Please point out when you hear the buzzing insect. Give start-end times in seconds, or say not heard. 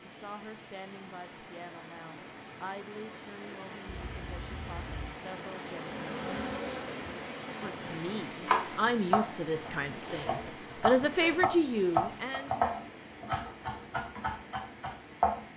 5.5-8.1.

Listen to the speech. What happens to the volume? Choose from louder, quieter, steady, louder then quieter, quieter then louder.
louder.